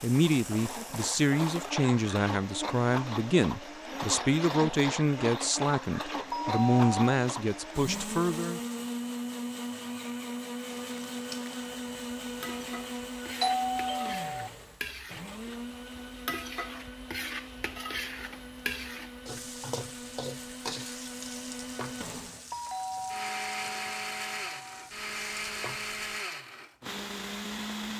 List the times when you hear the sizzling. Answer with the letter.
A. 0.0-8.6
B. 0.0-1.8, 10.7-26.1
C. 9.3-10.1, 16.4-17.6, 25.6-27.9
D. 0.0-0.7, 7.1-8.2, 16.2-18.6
B.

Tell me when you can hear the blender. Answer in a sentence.
The blender can be heard from 0.0 to 27.9 s.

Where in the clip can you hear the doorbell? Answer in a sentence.
You can hear the doorbell from 6.3 to 7.0 s, from 13.4 to 14.5 s and from 22.5 to 24.9 s.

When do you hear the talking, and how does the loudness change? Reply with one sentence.
You can hear the talking from 0.0 to 8.6 s, at a steady volume.